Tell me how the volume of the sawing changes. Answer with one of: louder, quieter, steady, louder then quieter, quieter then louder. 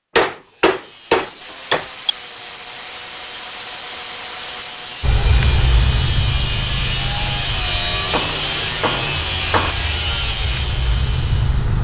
louder.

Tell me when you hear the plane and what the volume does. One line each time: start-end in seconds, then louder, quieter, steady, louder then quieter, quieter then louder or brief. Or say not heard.
5.0-11.7 quieter then louder.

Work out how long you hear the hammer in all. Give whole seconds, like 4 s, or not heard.
4 s.